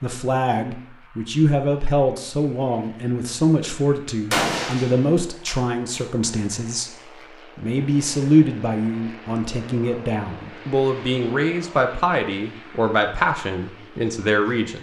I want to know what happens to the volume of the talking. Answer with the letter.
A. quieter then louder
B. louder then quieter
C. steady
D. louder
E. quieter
C.